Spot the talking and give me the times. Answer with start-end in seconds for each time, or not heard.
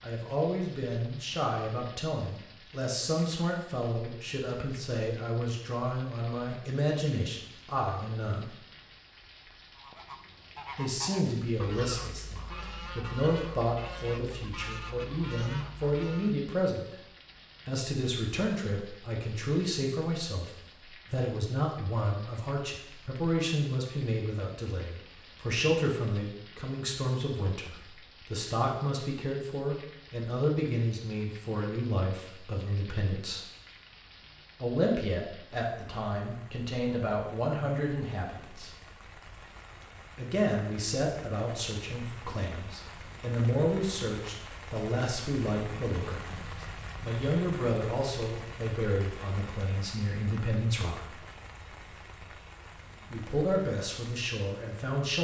0.0-8.5, 10.8-16.9, 17.6-33.4, 34.6-38.7, 40.1-51.1, 53.0-55.1.